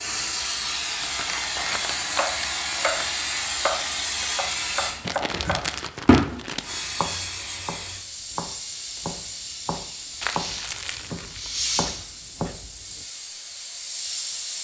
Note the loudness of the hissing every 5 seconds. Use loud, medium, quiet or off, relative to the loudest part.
loud, loud, medium.